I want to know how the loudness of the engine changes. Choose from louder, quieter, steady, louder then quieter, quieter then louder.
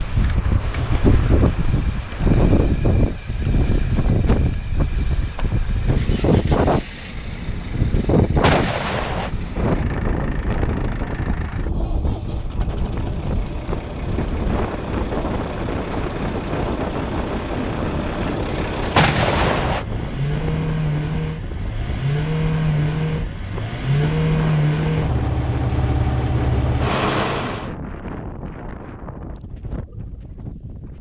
louder.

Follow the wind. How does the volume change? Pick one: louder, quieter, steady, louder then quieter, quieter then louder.
quieter.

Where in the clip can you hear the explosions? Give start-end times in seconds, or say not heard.
8.4-9.3, 18.9-19.9.